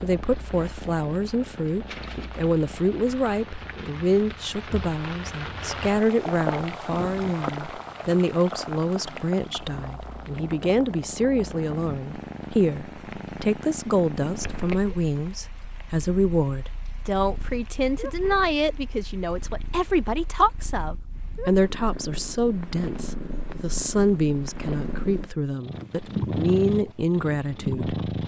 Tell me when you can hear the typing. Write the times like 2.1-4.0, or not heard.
not heard.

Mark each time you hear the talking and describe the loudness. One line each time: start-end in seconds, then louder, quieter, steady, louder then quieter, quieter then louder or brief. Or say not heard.
0.0-28.0 steady.